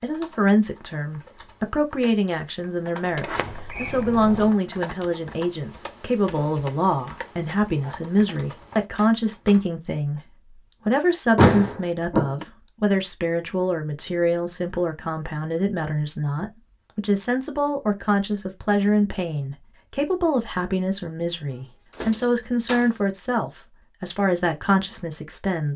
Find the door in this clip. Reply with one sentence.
The door can be heard from 3.1 to 4.5 s, from 11.3 to 12.4 s and from 21.6 to 22.9 s.